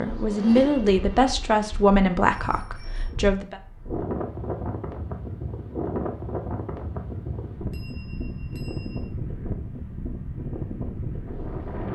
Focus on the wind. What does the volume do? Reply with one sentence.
The volume of the wind goes up.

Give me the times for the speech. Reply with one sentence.
You can hear the speech from 0.0 to 3.6 s.